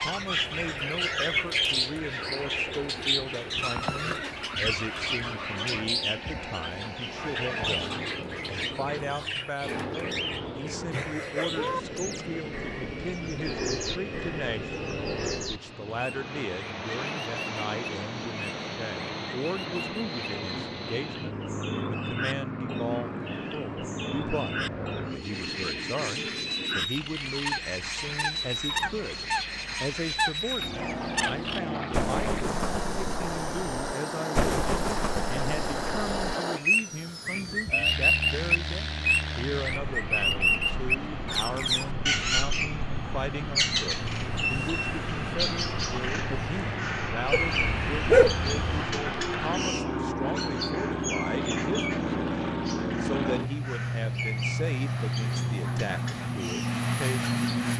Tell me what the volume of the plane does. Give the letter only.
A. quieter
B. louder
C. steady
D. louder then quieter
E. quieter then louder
B.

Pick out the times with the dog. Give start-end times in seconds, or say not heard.
47.3-48.9.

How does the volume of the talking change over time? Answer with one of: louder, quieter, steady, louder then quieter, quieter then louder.
steady.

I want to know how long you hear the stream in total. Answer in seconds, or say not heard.
not heard.